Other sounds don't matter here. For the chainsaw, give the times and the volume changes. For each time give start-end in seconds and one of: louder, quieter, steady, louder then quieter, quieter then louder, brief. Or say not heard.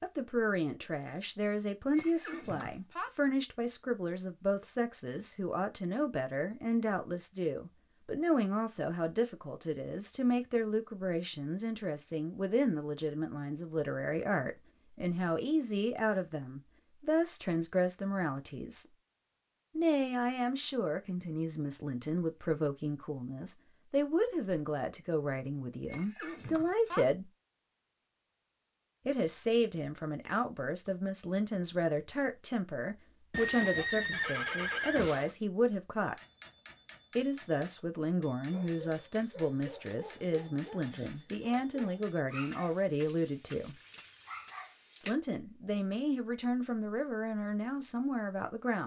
not heard.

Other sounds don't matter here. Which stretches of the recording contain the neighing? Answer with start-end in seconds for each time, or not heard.
1.9-3.1, 25.9-27.1, 33.3-35.4.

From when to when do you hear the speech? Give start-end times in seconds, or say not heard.
0.0-18.9, 19.8-27.3, 29.1-36.1, 37.1-43.8, 45.0-48.8.